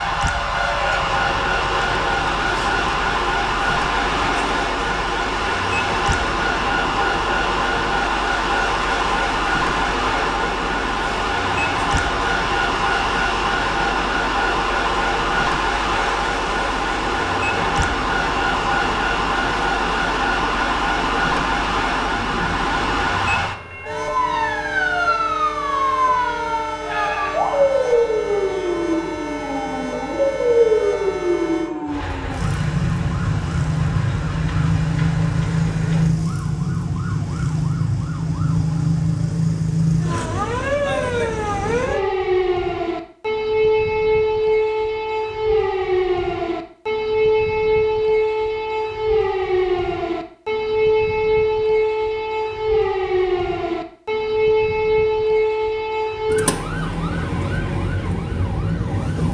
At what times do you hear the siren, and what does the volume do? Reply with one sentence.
You can hear the siren from 0.0 to 59.2 s, at a steady volume.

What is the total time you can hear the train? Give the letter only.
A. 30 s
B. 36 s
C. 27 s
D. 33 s
B.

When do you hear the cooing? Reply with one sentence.
You can't hear the cooing here.